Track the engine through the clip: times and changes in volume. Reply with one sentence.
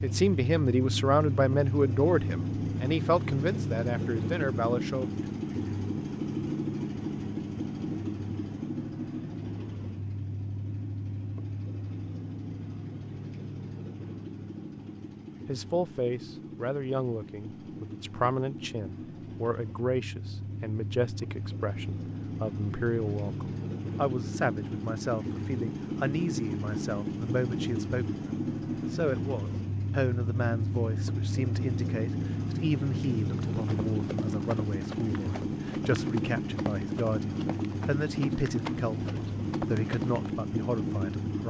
The engine can be heard from 0.0 to 41.4 s, getting quieter then louder.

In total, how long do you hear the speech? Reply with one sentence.
The speech can be heard for 31 seconds in total.